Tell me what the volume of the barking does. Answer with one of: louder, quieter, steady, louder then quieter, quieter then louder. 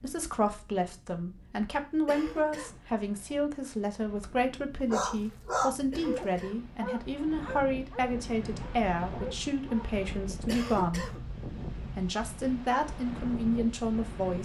quieter.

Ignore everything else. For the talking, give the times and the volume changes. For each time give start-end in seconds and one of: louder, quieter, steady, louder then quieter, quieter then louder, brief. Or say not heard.
0.0-11.1 steady
11.9-14.4 brief.